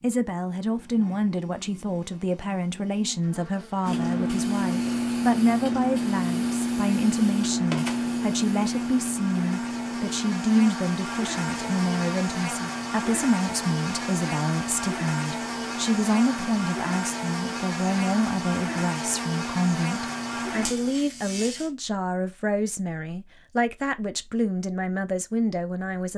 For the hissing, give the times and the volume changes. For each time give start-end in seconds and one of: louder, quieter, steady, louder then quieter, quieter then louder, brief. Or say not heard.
3.9-20.9 quieter.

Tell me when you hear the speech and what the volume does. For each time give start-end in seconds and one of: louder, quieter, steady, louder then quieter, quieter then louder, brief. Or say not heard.
0.0-26.1 steady.